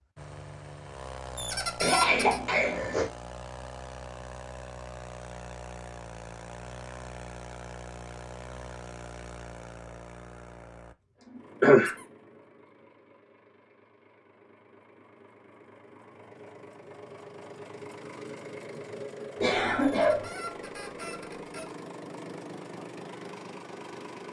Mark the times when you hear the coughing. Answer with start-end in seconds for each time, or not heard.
1.8-3.1, 11.2-11.9, 19.4-20.2.